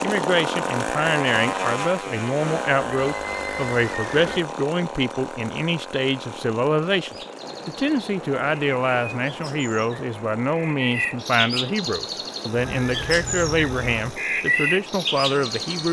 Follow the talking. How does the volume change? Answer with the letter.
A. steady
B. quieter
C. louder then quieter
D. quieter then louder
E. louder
A.